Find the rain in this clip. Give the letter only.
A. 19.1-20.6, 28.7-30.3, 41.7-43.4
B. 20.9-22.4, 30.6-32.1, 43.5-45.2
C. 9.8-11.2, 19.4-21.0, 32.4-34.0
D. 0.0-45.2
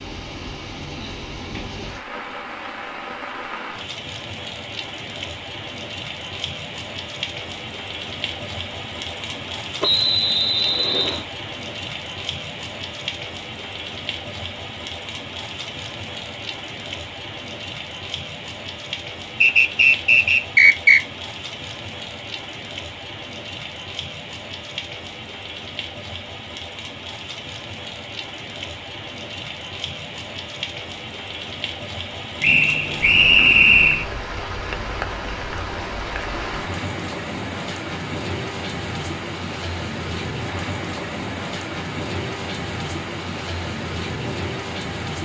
D.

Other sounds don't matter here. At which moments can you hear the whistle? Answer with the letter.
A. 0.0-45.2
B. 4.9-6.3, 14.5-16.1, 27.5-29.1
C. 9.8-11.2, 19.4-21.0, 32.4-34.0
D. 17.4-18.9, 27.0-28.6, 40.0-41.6
C.